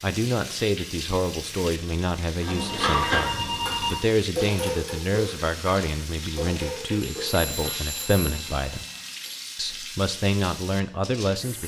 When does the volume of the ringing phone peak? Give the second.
4 s.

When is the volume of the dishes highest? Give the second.
3 s.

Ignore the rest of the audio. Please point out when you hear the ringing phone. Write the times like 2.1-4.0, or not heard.
2.5-4.0, 7.0-9.4.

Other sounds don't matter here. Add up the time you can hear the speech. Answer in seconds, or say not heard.
11 s.